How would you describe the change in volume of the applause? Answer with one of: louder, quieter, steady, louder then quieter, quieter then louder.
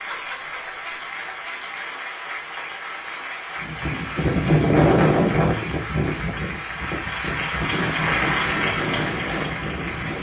louder.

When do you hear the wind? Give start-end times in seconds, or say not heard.
3.6-10.1.